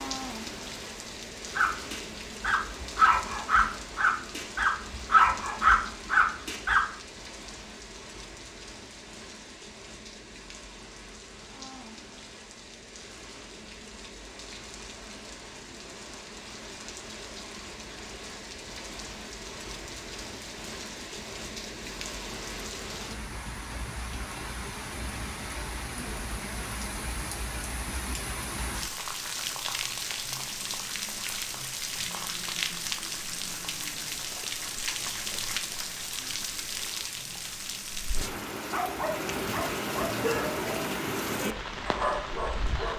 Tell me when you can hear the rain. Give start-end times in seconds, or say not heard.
0.0-42.9.